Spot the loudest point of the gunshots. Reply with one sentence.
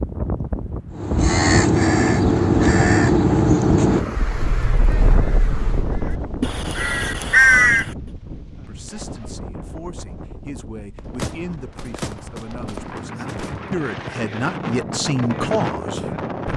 The loudest moment of the gunshots is at 11 seconds.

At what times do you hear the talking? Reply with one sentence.
The talking can be heard from 8.7 to 16.5 s.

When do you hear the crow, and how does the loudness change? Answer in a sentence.
You can hear the crow from 0.9 to 7.9 s, getting quieter then louder.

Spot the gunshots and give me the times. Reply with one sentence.
You can hear the gunshots from 10.9 to 13.8 s.